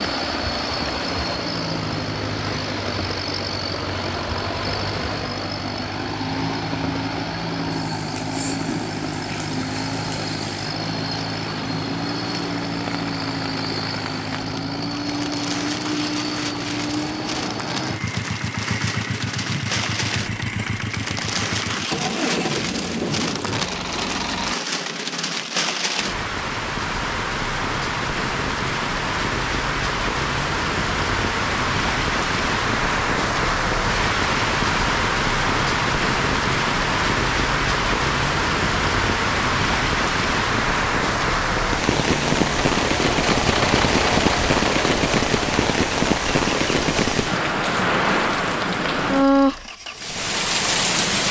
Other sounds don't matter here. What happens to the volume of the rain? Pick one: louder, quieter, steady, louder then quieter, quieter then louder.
louder.